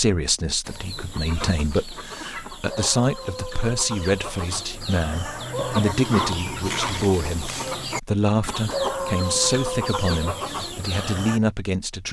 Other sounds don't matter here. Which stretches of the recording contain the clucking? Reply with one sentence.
The clucking can be heard from 0.6 to 11.4 s.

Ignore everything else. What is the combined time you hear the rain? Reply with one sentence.
The rain can't be heard in this clip.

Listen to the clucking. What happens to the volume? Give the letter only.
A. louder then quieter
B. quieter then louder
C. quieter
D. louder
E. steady
D.